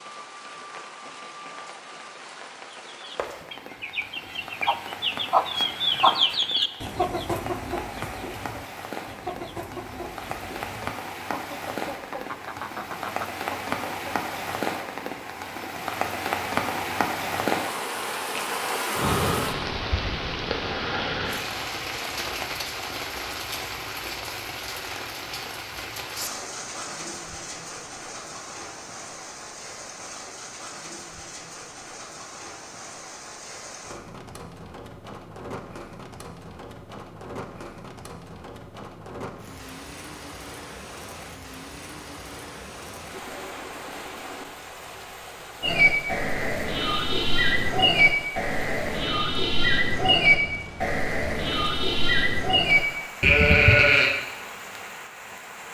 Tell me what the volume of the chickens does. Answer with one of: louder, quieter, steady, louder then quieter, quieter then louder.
louder then quieter.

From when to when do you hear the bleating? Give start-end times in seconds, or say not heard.
45.6-54.1.